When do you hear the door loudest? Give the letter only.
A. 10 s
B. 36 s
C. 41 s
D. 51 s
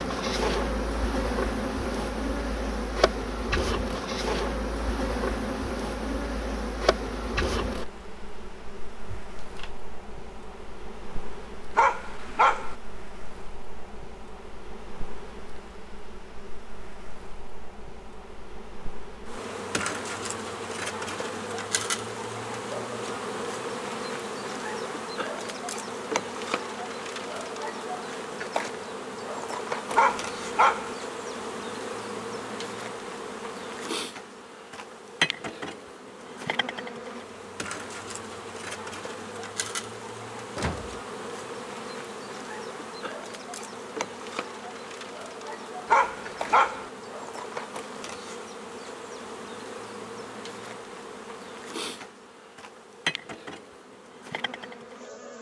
C.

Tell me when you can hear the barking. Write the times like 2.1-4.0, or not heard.
11.8-12.8, 29.9-30.9, 45.9-46.9.